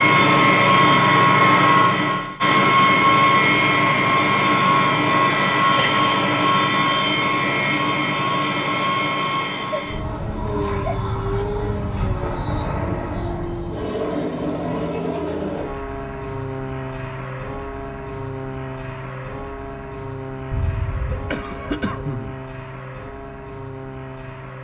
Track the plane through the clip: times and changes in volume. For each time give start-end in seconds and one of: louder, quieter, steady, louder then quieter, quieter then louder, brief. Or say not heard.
0.0-24.5 quieter.